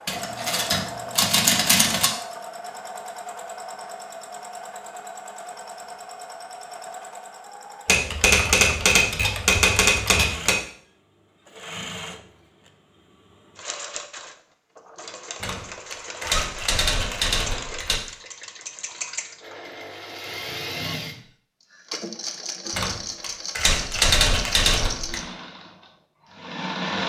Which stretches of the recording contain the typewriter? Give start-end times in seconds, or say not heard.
0.1-2.1, 7.8-10.6, 15.4-18.0, 22.7-25.2.